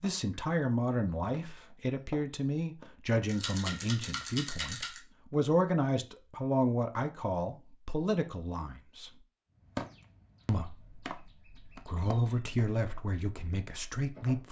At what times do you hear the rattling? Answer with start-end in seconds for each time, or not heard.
3.2-5.0.